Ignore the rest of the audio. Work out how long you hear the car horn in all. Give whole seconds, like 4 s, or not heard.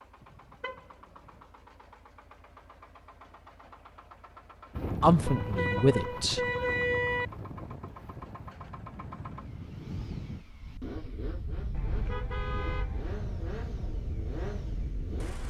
4 s.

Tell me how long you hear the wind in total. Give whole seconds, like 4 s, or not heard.
11 s.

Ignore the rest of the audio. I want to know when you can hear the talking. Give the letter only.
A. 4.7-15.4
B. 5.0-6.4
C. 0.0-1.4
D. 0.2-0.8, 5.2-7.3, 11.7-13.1
B.